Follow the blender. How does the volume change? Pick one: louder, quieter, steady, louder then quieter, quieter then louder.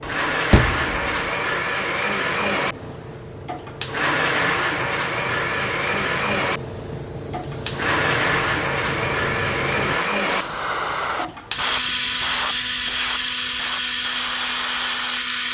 steady.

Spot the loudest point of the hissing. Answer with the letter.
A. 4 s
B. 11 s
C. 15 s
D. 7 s
B.